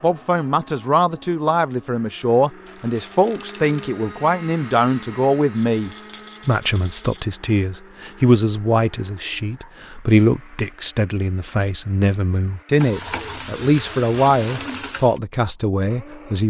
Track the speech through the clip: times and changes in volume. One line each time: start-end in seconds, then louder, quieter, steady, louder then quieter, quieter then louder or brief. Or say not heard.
0.0-16.4 steady.